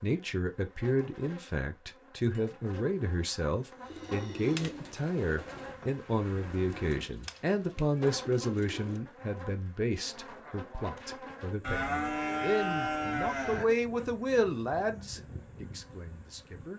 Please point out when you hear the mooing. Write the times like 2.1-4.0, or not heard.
3.6-4.7, 11.6-13.7.